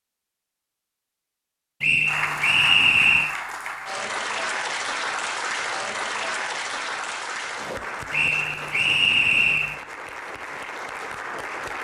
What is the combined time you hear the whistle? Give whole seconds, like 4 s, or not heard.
3 s.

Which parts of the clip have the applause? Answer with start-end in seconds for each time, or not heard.
2.0-11.8.